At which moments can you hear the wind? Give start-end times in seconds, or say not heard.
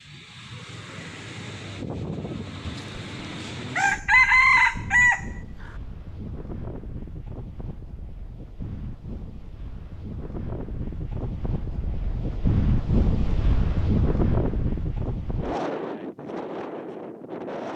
0.0-17.7.